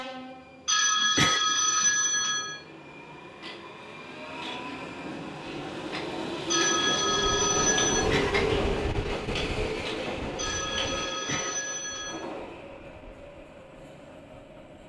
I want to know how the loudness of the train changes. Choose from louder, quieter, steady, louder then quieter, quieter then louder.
louder then quieter.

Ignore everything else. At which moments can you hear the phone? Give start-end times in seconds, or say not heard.
0.7-2.6, 6.5-8.1, 10.3-12.2.